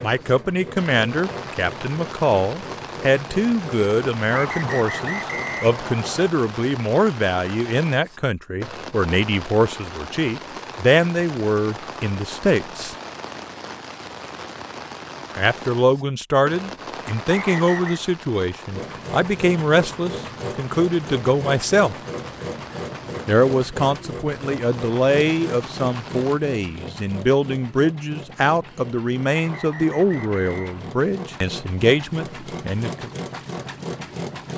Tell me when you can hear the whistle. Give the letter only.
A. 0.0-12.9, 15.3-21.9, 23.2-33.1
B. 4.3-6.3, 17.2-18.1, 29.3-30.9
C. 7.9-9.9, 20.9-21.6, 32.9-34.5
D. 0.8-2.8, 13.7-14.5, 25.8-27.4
B.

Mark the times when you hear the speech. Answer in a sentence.
You can hear the speech from 0.0 to 12.9 s, from 15.3 to 21.9 s and from 23.2 to 33.1 s.